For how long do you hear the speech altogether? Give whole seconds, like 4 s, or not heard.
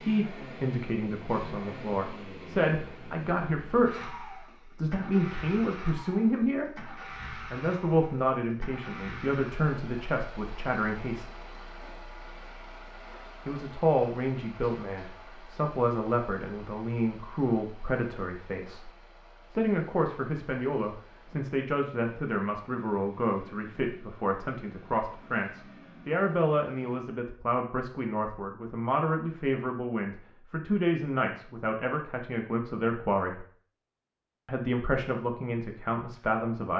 33 s.